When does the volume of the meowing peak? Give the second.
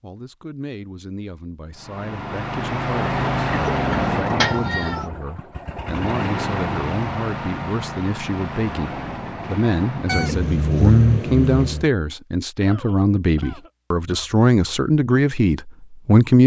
11 s.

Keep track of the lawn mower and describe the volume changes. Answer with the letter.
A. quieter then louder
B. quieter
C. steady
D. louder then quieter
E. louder
B.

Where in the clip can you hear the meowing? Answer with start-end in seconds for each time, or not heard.
4.4-5.0, 10.1-11.8.